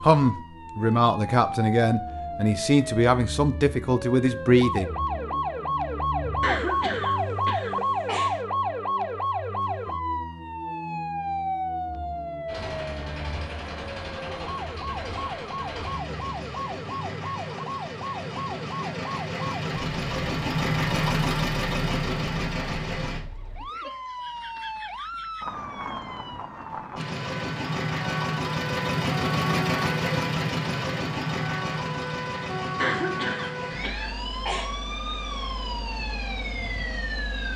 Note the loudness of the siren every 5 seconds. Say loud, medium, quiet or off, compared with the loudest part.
medium, loud, medium, medium, medium, medium, medium, medium.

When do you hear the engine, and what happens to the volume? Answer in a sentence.
The engine can be heard from 12.4 to 23.2 s, getting louder; and from 26.9 to 37.5 s, getting quieter.